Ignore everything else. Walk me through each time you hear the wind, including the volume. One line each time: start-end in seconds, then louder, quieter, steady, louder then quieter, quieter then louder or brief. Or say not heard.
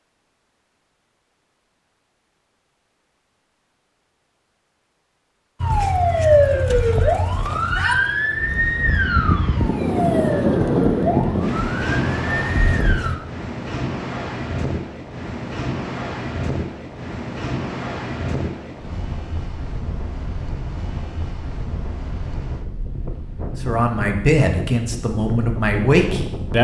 8.3-26.5 quieter.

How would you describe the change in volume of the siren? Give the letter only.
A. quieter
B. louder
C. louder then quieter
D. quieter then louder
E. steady
A.